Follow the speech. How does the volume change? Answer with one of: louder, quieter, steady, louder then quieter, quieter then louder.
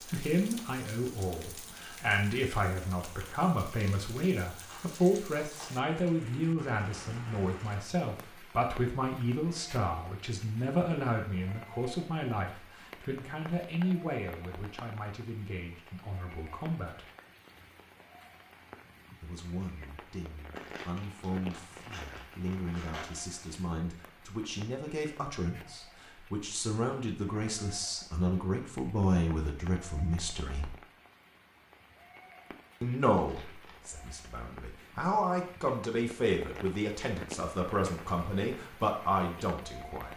quieter then louder.